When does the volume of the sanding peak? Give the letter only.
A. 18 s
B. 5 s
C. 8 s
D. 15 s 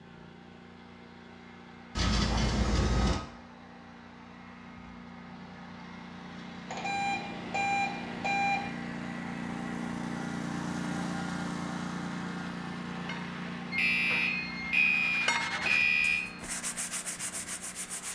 D.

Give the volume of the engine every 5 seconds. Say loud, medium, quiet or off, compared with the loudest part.
quiet, loud, loud, medium.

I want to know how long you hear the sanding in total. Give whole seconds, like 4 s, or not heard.
5 s.